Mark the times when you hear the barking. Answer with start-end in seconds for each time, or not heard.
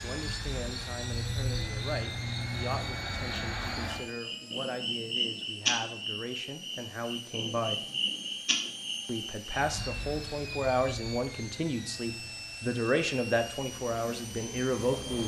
not heard.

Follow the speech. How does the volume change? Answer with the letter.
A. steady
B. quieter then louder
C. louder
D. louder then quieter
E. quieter
C.